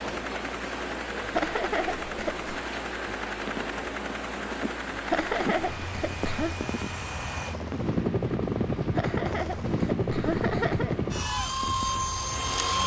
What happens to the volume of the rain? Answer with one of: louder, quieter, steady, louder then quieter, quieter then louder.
quieter.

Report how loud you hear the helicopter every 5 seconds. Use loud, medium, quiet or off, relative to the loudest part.
medium, loud, loud.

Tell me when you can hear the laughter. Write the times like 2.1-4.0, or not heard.
1.3-2.5, 5.1-6.6, 8.9-10.9.